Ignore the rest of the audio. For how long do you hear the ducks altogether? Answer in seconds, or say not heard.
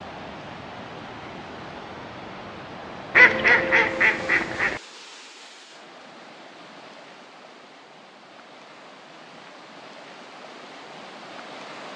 2 s.